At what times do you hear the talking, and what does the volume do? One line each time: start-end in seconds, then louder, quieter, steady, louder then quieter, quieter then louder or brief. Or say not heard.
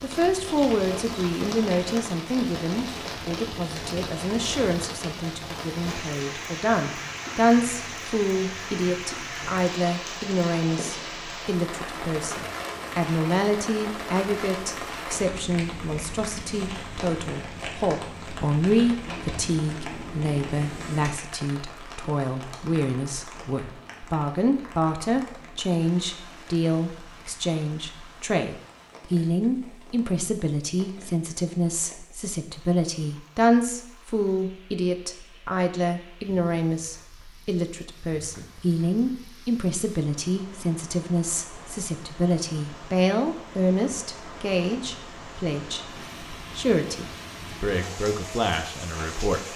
0.0-49.4 steady.